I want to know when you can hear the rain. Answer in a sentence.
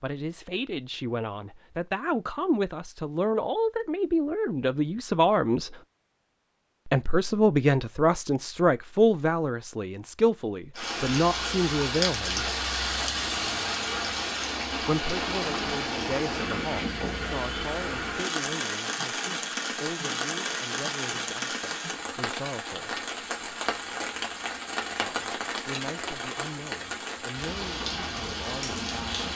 You can hear the rain from 10.8 to 29.3 s.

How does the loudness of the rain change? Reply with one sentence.
The volume of the rain stays about the same.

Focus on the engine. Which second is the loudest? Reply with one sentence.
The loudest moment of the engine is at 13 seconds.